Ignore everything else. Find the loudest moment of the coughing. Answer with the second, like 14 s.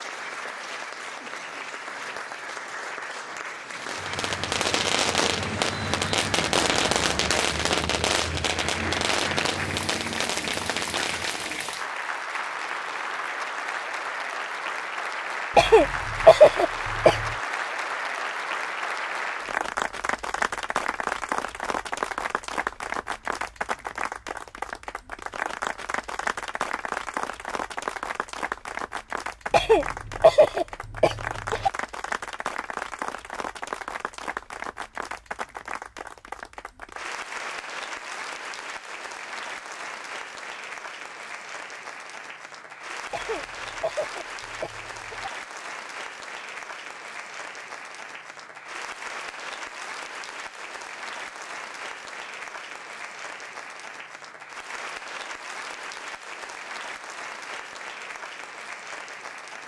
16 s.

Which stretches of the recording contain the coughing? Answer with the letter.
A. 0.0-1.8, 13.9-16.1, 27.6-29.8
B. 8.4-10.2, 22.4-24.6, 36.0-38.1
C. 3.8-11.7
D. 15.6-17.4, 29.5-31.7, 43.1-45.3
D.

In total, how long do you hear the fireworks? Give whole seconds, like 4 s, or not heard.
8 s.